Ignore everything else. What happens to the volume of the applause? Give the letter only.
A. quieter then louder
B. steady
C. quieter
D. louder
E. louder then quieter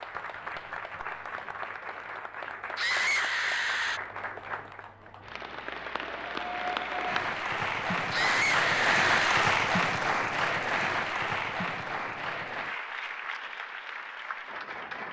E.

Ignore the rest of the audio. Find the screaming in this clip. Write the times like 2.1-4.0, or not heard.
2.8-4.0, 8.1-9.4.